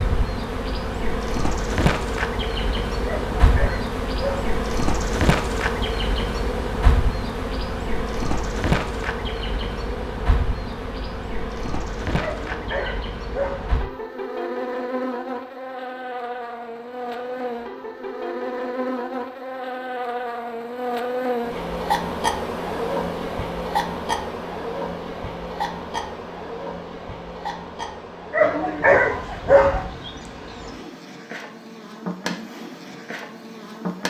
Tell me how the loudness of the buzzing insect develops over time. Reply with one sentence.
The volume of the buzzing insect goes down.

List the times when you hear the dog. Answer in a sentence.
The dog can be heard from 3.0 to 4.5 s, from 12.2 to 13.7 s and from 28.3 to 29.9 s.